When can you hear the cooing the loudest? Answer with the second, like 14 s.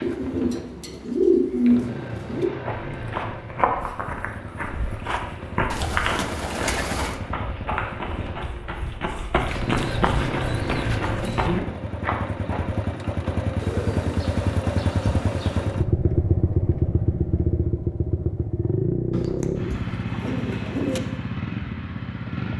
1 s.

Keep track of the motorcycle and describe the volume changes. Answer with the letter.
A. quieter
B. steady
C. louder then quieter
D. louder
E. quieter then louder
D.